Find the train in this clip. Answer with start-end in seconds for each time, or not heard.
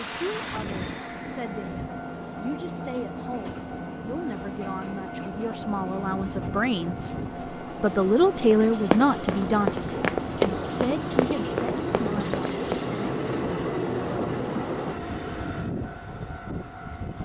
0.0-17.2.